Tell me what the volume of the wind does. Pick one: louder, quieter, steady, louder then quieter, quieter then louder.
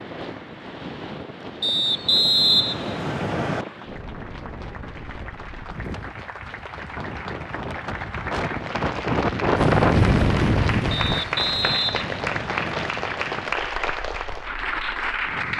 louder then quieter.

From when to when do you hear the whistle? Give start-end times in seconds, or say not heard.
1.6-3.6, 10.9-12.9.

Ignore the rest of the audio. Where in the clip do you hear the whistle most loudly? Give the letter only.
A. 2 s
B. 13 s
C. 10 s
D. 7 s
A.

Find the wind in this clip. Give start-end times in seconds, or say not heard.
0.0-15.5.